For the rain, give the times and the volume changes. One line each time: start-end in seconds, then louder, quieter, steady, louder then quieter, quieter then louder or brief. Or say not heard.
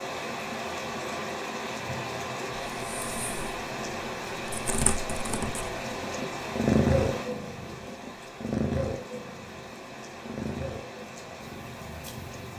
0.0-12.5 quieter.